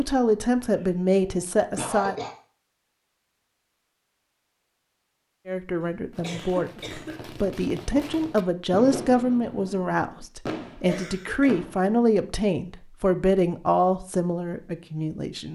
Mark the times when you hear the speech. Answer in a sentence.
The speech can be heard from 0.0 to 2.1 s and from 5.5 to 15.5 s.